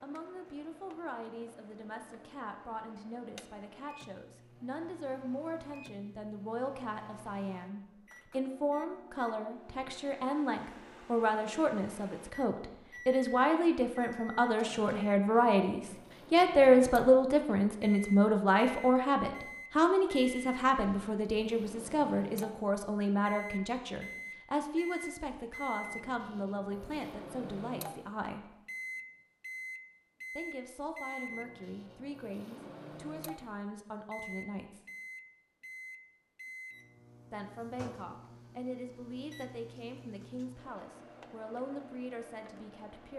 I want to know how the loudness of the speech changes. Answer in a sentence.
The volume of the speech goes up, then down.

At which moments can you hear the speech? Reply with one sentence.
The speech can be heard from 0.0 to 28.6 s, from 30.4 to 34.8 s and from 37.3 to 43.1 s.